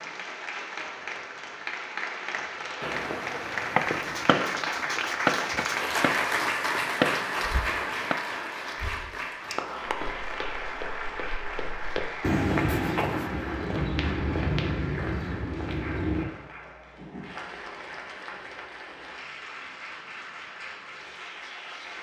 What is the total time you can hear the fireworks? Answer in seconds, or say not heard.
5 s.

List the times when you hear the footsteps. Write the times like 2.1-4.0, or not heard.
9.8-16.2.